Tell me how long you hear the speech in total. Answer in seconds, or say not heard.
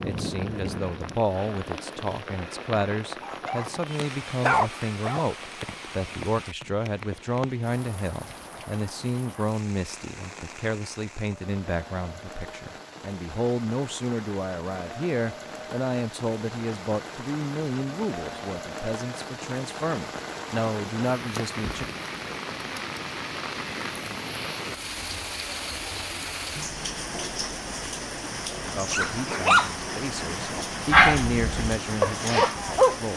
26 s.